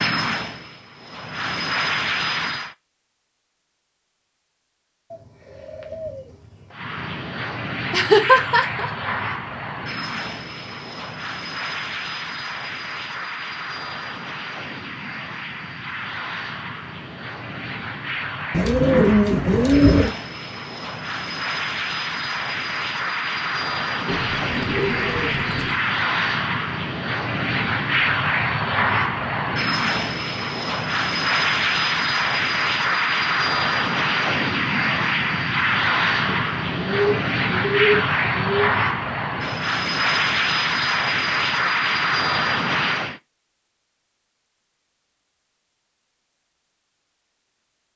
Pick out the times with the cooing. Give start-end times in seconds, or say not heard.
5.1-6.8, 18.5-20.1, 24.1-25.8, 36.2-38.7.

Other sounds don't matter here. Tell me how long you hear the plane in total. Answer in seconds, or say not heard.
39 s.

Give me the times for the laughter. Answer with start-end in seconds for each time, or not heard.
7.9-9.1.